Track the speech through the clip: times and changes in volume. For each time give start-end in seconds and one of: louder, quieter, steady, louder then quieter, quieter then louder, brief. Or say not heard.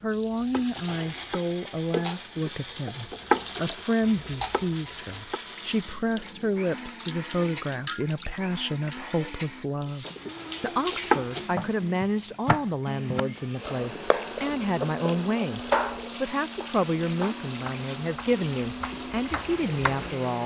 0.0-20.4 steady.